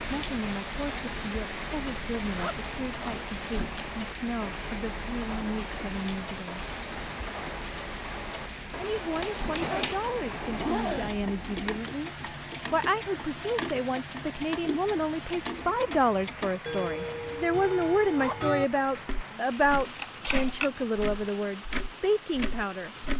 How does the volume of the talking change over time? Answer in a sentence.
The volume of the talking goes up.